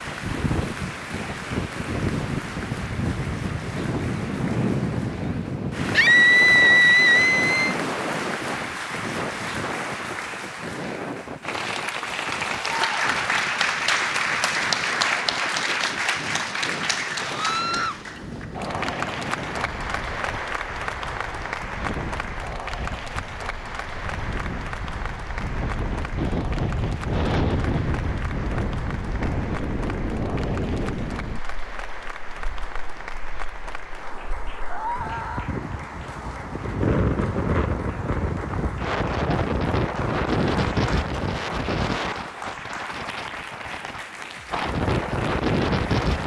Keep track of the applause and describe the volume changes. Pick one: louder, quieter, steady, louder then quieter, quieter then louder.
louder then quieter.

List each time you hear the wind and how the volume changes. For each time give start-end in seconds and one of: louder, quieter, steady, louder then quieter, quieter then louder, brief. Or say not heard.
0.0-46.2 quieter then louder.